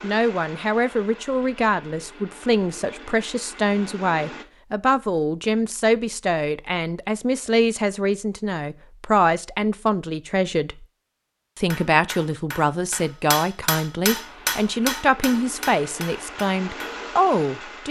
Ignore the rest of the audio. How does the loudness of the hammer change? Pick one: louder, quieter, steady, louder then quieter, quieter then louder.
louder then quieter.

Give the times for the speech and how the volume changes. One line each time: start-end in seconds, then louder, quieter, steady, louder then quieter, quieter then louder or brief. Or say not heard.
0.0-10.8 steady
11.6-17.8 steady.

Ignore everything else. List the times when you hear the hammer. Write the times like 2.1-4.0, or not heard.
11.7-17.1.